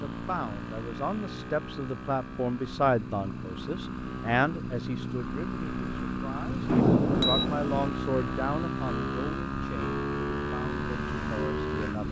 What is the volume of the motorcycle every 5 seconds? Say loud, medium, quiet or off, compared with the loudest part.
medium, loud, loud.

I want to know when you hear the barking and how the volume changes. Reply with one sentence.
You can't hear the barking here.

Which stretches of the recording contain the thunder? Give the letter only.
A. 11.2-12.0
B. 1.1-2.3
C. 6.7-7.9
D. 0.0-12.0
C.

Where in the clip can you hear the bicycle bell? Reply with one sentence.
You can hear the bicycle bell from 6.7 to 7.5 s.